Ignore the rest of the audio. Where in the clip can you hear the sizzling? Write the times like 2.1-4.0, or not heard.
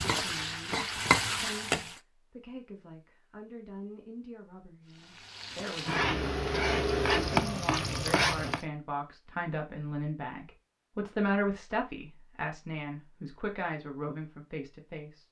0.0-2.0, 5.0-8.6.